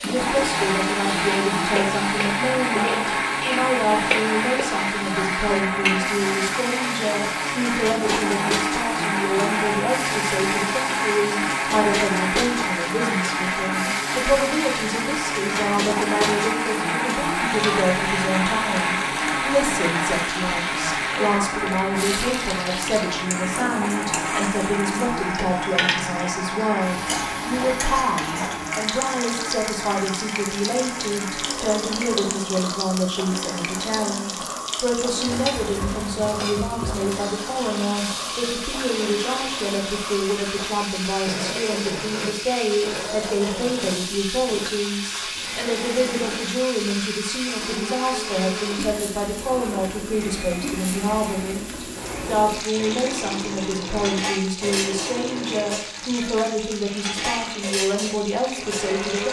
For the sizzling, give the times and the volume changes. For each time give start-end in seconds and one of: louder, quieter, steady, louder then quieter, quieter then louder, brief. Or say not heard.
0.0-59.2 steady.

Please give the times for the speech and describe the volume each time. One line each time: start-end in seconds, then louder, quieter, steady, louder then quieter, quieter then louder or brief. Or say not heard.
0.0-59.2 steady.